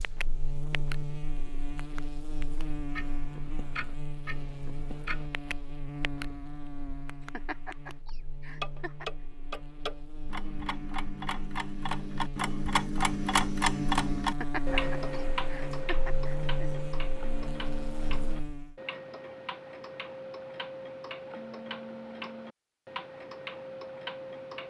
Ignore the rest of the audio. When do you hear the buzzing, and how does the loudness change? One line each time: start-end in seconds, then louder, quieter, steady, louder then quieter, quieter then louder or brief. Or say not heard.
0.0-18.8 quieter then louder.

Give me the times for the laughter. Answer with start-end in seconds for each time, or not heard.
7.3-9.1, 14.4-16.9.